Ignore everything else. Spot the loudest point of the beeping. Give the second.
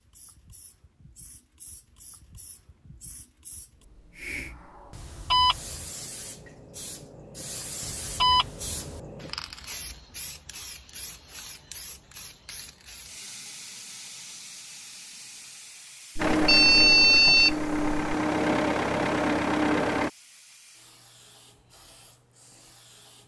17 s.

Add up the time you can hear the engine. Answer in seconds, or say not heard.
4 s.